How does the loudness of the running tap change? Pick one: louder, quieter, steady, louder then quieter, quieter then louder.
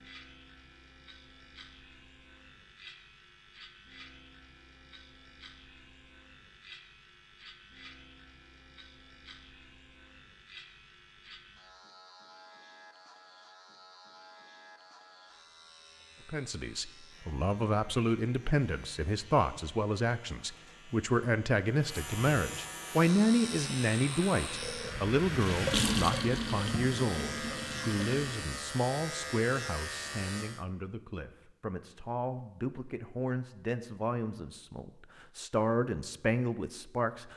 louder then quieter.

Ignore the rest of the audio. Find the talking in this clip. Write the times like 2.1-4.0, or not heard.
16.2-37.3.